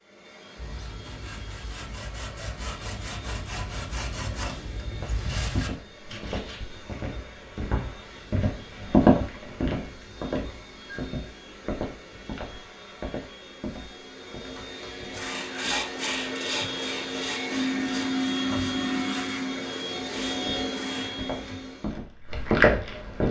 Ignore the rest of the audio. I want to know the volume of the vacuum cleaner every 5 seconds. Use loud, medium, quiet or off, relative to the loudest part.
quiet, quiet, quiet, loud, loud.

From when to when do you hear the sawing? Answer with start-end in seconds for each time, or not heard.
0.6-6.6, 15.1-21.1.